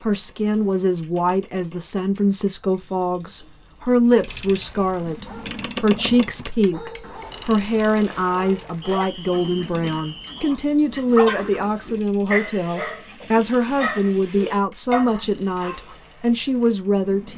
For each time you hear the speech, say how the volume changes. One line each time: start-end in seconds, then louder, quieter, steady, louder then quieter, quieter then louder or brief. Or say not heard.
0.0-17.3 steady.